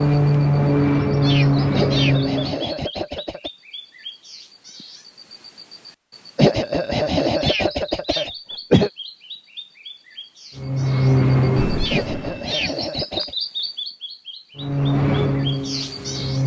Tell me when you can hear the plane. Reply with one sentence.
You can hear the plane from 0.0 to 2.6 s, from 10.6 to 12.6 s and from 14.6 to 16.4 s.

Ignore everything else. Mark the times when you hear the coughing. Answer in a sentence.
The coughing can be heard from 1.7 to 3.5 s, from 6.3 to 8.9 s and from 11.9 to 13.3 s.